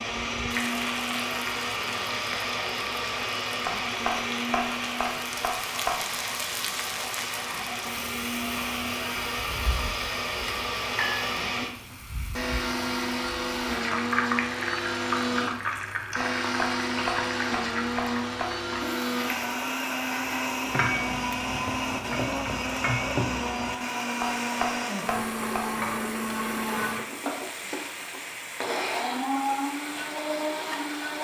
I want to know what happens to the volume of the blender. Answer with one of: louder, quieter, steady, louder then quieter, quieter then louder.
steady.